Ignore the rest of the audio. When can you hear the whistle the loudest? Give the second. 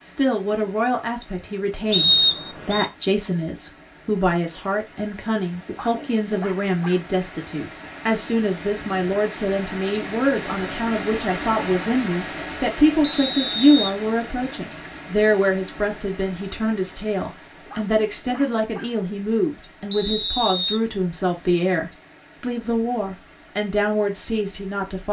2 s.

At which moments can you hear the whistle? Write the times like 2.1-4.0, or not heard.
1.9-2.9, 13.0-13.9, 19.9-20.8.